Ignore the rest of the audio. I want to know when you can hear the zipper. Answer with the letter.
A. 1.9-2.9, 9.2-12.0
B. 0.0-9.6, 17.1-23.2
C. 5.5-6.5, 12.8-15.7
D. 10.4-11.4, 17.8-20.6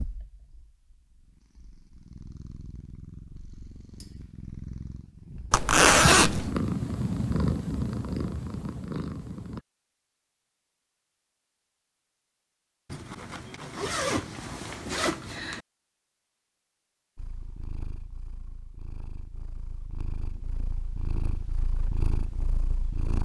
C.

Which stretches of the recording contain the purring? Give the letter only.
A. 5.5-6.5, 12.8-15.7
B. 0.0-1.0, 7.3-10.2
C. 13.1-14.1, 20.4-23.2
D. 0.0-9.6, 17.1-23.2
D.